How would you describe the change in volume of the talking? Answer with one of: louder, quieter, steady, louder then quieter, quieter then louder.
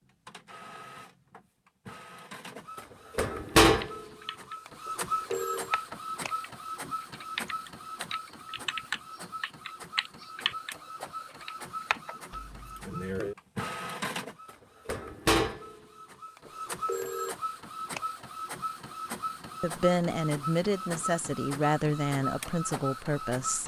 steady.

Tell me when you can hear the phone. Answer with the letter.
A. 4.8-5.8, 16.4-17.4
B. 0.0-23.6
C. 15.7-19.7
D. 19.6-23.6
A.